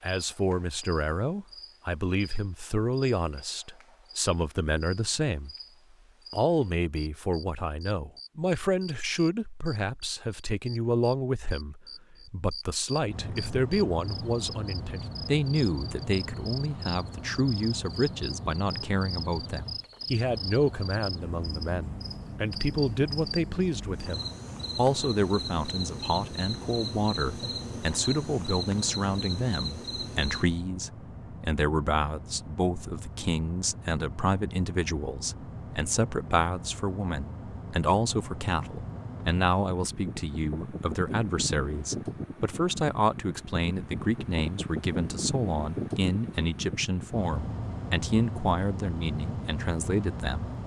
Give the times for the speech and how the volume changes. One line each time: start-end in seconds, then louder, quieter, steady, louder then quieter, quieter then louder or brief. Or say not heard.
0.0-5.5 quieter then louder
6.3-50.5 steady.